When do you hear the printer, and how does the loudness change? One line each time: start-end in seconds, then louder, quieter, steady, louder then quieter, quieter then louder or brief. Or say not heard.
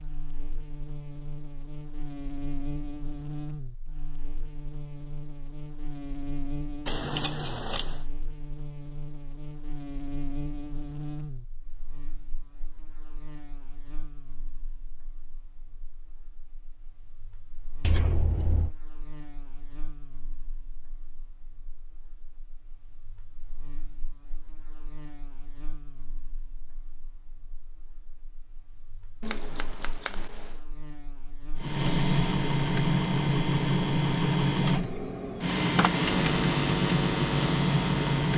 31.6-38.3 steady.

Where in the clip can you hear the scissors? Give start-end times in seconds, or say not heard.
6.8-7.8, 17.8-18.8, 29.2-30.4.